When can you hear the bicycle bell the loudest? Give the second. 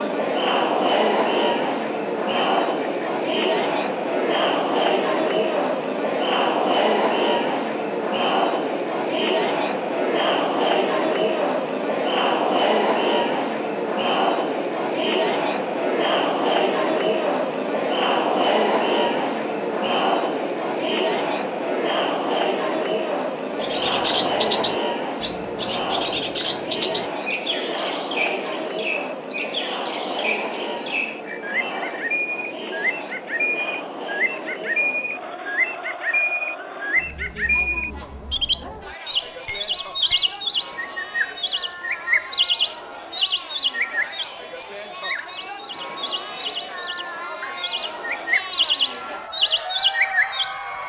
40 s.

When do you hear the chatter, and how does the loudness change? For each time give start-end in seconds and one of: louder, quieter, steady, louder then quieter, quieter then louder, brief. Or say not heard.
0.0-50.8 quieter.